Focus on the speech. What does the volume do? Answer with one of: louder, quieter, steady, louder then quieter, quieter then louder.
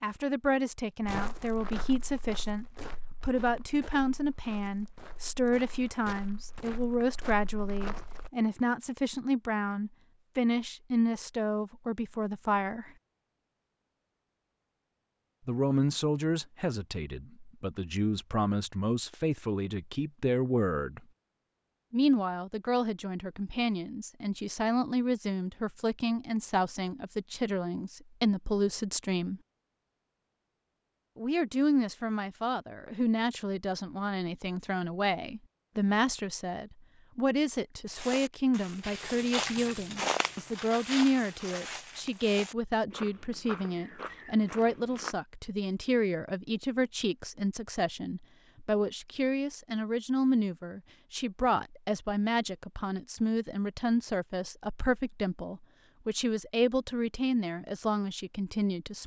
steady.